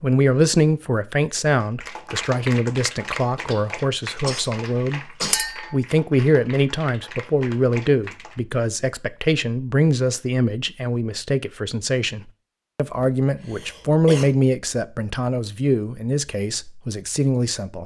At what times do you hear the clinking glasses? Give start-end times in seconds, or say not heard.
5.3-5.8.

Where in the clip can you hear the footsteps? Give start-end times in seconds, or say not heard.
not heard.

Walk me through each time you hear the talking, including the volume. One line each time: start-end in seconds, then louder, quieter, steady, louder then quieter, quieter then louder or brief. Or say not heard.
0.0-17.8 steady.